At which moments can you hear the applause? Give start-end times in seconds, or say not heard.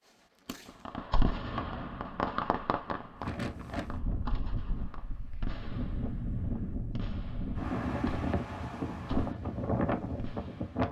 not heard.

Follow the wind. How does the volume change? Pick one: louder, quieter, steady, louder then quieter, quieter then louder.
louder.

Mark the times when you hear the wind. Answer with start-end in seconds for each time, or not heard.
3.1-10.8.